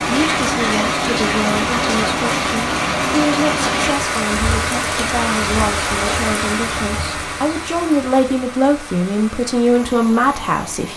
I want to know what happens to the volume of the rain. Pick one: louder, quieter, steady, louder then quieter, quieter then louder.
quieter.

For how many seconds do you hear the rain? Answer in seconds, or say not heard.
11 s.